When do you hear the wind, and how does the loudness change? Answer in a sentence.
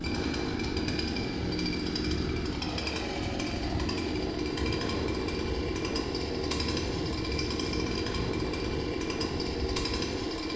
You can hear the wind from 0.0 to 10.5 s, at a steady volume.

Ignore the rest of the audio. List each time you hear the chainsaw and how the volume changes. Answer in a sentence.
You can hear the chainsaw from 0.0 to 10.5 s, at a steady volume.